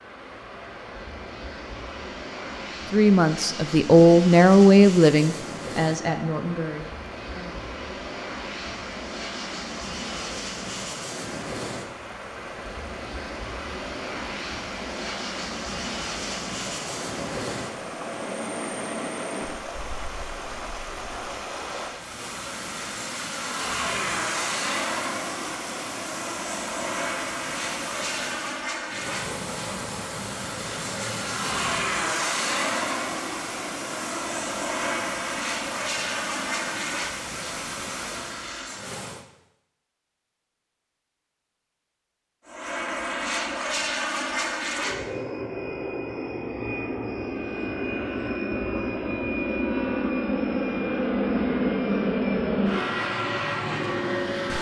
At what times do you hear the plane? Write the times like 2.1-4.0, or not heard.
0.0-39.0, 42.5-54.5.